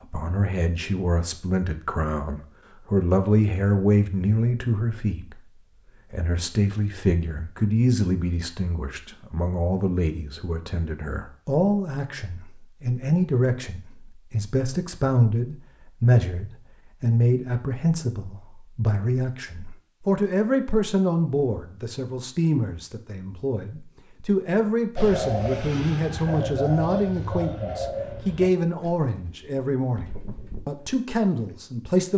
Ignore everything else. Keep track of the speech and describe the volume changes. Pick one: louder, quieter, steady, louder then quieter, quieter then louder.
steady.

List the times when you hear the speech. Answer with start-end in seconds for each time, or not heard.
0.0-5.4, 6.1-32.1.